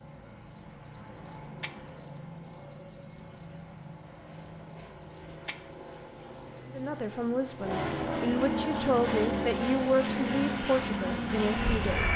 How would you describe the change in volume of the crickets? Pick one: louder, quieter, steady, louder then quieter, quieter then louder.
quieter.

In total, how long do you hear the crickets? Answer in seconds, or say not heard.
12 s.